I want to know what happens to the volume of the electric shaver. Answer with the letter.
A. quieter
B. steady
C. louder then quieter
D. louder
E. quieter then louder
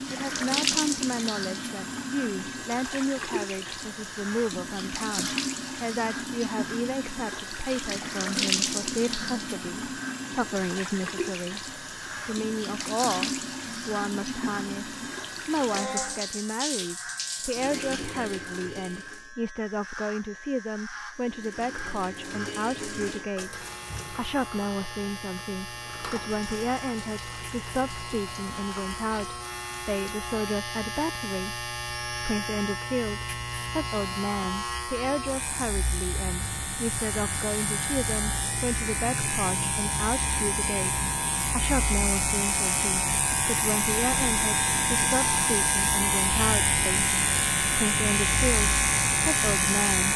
D.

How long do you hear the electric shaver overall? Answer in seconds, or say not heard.
50 s.